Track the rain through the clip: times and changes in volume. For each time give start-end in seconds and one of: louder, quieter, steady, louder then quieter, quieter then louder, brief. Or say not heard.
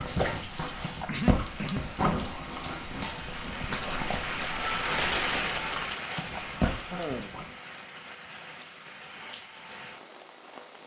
0.0-10.8 louder then quieter.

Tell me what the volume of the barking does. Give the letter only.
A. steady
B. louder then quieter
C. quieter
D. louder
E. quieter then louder
E.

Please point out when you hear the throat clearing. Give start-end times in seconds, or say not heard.
1.1-2.2, 6.7-7.3.